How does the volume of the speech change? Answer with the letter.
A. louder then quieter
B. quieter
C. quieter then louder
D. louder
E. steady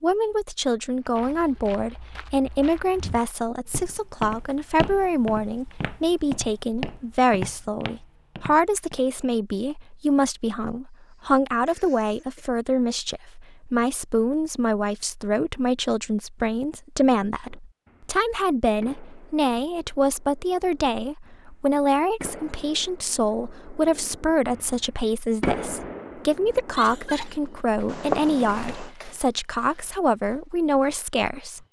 E.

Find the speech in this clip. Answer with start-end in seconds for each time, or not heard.
0.0-31.6.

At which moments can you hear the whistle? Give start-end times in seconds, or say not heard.
not heard.